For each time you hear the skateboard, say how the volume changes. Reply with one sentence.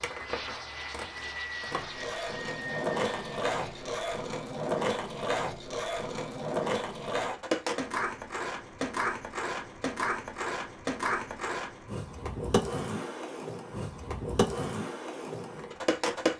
You can hear the skateboard from 0.0 to 16.3 s, at a steady volume.